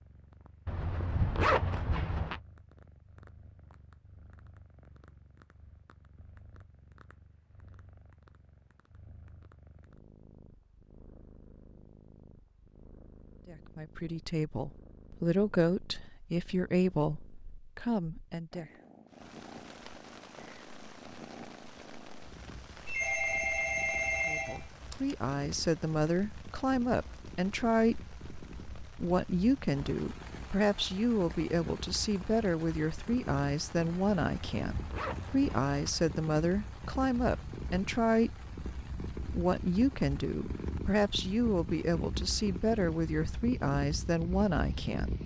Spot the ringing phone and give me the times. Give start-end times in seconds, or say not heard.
22.9-25.1.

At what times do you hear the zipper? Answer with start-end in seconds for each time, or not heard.
0.7-2.4, 34.2-36.0.